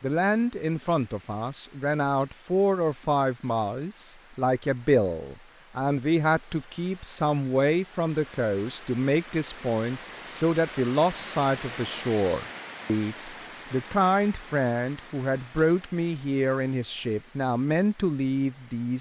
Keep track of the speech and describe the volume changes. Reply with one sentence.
The loudness of the speech stays about the same.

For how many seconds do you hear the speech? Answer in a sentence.
The speech can be heard for 19 seconds in total.